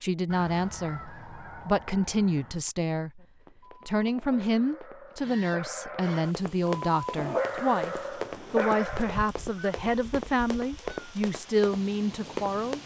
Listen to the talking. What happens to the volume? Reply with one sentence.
The loudness of the talking stays about the same.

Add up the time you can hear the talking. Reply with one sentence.
The talking can be heard for 12 seconds in total.